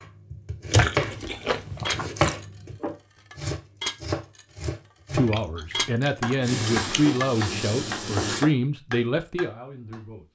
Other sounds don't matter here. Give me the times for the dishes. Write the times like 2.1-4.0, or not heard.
1.1-2.5, 3.3-4.5, 5.2-6.3.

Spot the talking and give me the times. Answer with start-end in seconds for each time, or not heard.
5.1-10.2.